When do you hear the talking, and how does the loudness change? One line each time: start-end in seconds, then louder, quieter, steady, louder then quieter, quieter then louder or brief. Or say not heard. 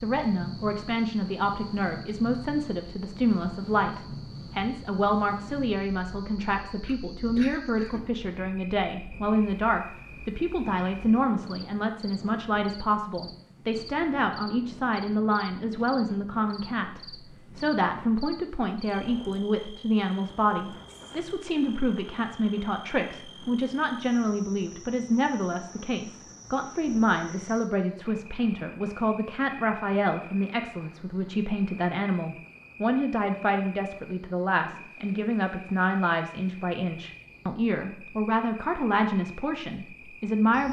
0.0-40.6 steady.